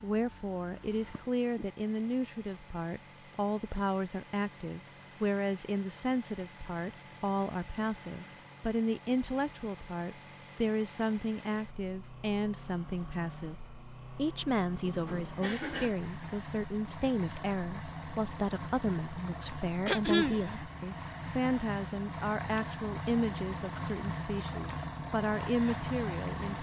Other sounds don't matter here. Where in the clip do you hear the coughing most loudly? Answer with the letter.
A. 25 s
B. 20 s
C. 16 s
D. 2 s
B.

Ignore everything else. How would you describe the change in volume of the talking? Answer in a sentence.
The volume of the talking stays about the same.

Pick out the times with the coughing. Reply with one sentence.
You can hear the coughing from 1.1 to 1.7 s, from 14.8 to 15.9 s and from 19.9 to 20.4 s.